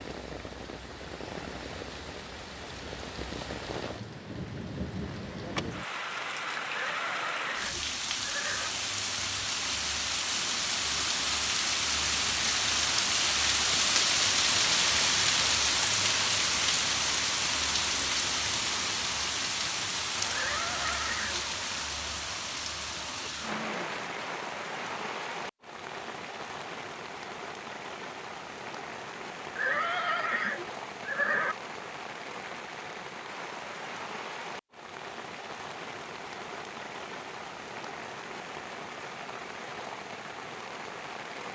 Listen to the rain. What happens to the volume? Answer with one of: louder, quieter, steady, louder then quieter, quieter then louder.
louder then quieter.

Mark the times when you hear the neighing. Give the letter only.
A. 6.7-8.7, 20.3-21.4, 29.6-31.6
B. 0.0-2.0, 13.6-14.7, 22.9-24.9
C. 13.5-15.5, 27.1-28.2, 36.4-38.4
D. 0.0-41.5
A.